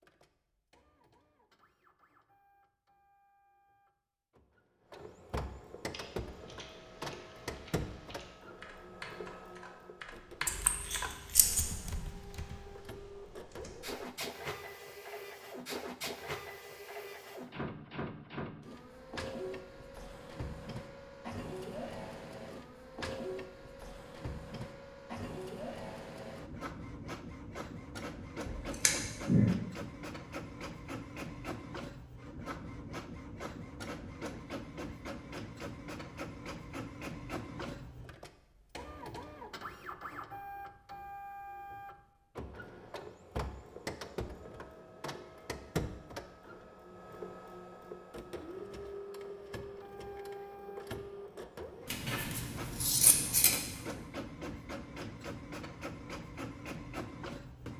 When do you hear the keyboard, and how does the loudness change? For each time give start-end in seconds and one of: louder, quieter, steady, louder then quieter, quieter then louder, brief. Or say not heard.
5.8-14.0 louder then quieter.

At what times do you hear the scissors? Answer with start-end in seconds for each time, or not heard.
10.4-11.7, 28.4-29.5, 51.9-53.8.